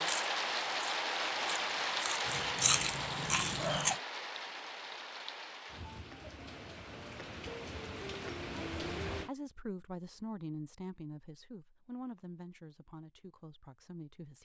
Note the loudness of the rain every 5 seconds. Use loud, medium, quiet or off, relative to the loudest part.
loud, medium, off.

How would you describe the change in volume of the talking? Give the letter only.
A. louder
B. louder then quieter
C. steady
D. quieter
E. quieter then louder
D.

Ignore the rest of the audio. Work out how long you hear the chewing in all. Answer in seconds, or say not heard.
4 s.